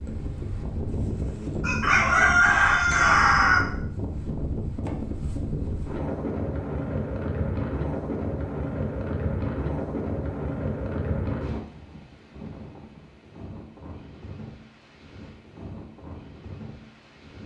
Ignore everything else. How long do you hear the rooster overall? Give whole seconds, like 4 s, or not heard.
2 s.